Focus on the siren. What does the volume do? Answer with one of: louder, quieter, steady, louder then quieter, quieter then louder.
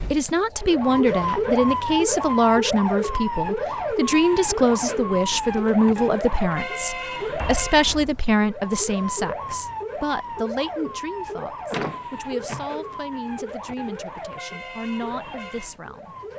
quieter.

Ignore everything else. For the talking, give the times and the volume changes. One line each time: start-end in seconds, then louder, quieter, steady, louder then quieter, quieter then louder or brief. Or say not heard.
0.1-16.1 quieter.